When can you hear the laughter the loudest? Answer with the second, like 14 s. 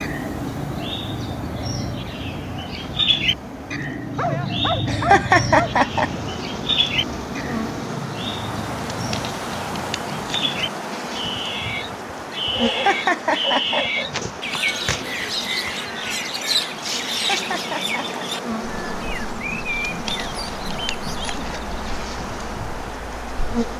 5 s.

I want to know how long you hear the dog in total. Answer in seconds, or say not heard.
3 s.